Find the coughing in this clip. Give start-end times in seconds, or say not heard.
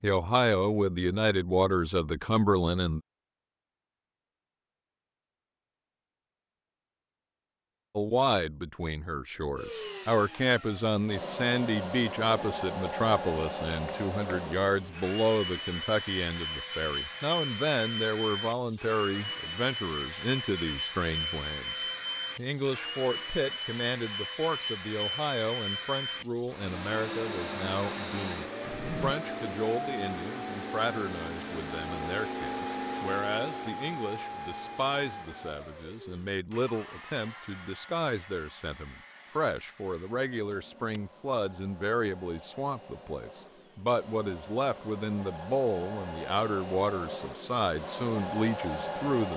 not heard.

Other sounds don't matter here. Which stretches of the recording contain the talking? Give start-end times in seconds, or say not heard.
0.0-3.0, 8.0-49.3.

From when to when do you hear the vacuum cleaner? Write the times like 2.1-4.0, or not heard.
9.6-49.3.